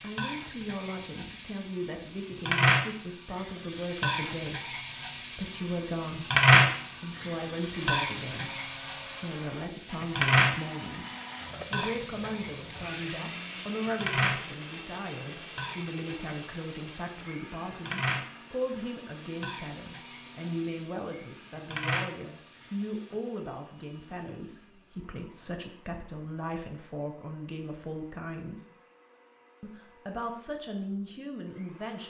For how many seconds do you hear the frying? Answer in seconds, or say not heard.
23 s.